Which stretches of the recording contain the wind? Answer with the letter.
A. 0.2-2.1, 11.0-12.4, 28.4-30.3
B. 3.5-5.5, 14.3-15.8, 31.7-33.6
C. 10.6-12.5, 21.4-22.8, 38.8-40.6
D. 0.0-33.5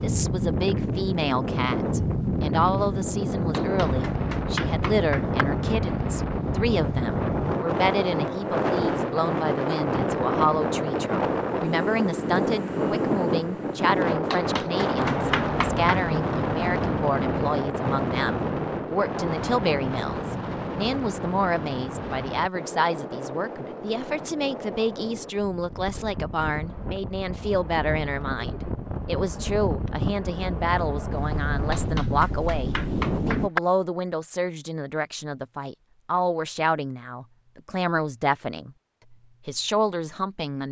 D.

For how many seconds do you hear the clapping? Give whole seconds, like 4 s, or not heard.
5 s.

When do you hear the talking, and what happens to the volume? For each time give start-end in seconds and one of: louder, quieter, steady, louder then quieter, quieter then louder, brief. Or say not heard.
0.0-40.6 steady.